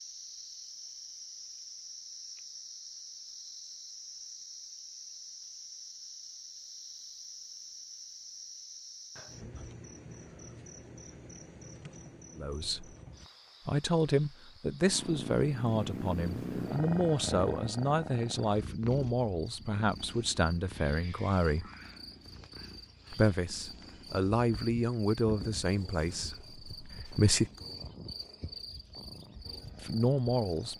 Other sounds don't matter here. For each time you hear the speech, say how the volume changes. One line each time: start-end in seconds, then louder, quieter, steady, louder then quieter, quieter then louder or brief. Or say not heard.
12.3-12.9 brief
13.7-21.7 steady
23.1-27.5 louder then quieter
29.8-30.7 brief.